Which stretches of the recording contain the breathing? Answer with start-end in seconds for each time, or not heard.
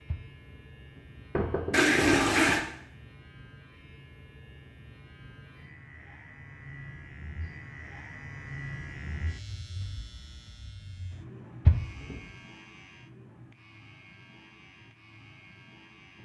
not heard.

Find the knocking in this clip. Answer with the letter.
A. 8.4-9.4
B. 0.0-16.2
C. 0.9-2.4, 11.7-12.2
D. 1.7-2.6
C.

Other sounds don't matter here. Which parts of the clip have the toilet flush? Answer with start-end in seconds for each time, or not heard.
1.7-2.6.